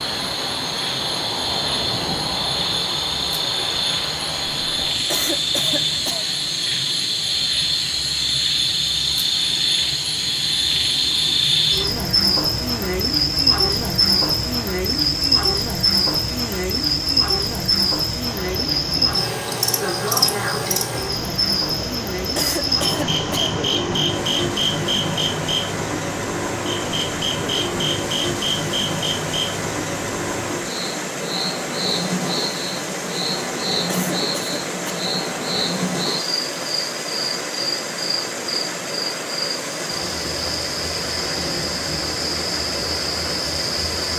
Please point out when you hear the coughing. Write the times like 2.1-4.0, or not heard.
5.0-6.3, 22.4-23.6, 33.9-35.1.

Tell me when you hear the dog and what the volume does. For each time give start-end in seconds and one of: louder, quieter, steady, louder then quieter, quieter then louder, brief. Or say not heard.
not heard.